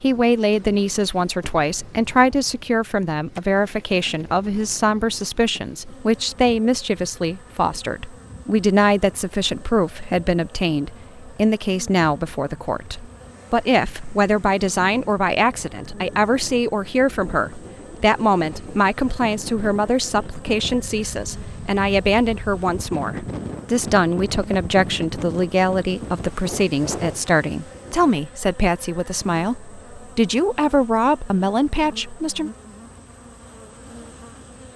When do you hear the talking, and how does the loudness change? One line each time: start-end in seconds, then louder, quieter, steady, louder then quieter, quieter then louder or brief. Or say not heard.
0.0-32.5 steady.